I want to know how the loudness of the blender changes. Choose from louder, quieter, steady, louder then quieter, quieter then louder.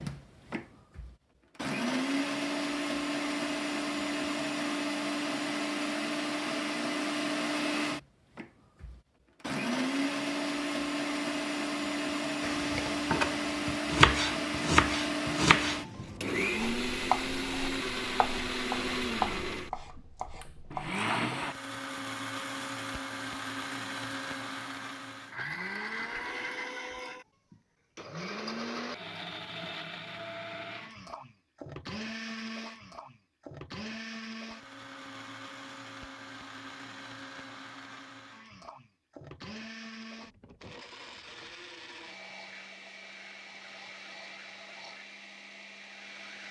quieter.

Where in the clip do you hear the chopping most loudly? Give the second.
14 s.